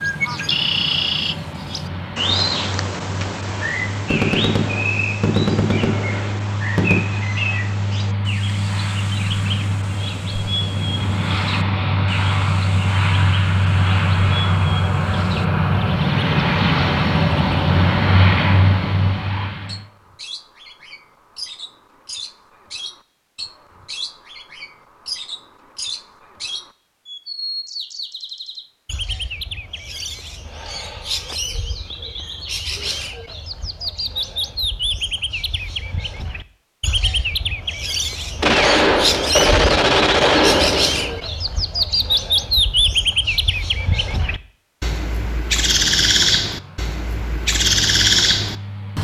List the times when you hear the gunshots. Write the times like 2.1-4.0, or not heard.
4.1-7.0, 38.4-41.2.